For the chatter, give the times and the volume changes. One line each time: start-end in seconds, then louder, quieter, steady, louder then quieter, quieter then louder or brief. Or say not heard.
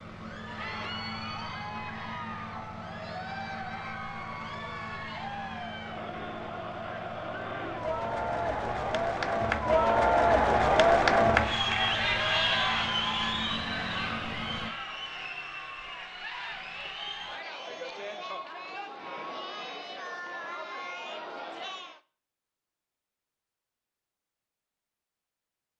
0.1-22.0 louder then quieter.